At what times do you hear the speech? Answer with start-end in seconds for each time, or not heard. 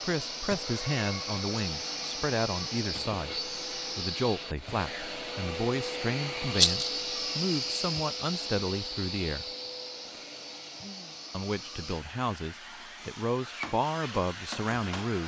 0.0-9.4, 11.3-15.2.